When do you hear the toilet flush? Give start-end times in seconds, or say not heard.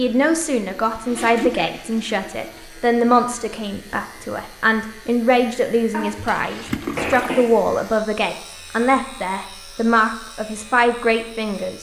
0.8-2.6, 6.3-7.3.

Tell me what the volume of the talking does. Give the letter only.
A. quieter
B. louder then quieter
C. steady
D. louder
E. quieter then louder
C.